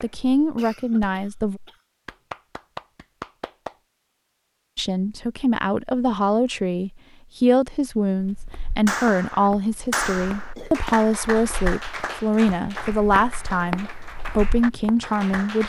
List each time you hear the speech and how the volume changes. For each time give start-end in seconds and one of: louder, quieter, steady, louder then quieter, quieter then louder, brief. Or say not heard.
0.0-1.6 brief
4.8-15.6 steady.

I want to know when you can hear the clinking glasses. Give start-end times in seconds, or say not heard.
not heard.